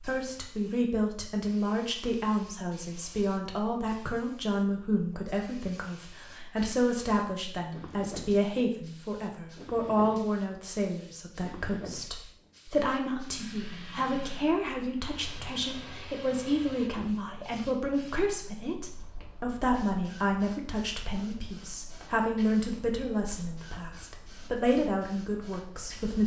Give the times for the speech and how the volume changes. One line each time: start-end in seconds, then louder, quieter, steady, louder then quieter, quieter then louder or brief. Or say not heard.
0.0-26.2 steady.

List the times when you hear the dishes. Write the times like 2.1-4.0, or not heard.
not heard.